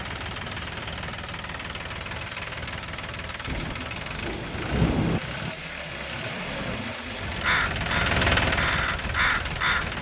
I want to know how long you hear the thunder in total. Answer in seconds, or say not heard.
2 s.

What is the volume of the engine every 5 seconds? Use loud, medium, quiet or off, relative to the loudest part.
medium, loud.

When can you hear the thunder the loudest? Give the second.
5 s.